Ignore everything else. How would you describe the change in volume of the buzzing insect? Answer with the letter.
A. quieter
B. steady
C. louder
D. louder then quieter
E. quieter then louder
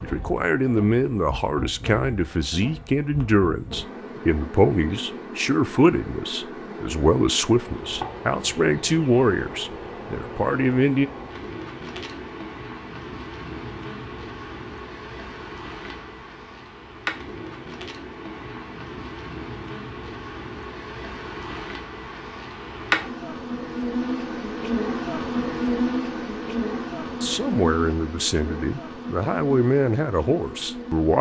C.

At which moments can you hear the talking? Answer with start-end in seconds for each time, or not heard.
0.0-11.1, 27.1-31.1.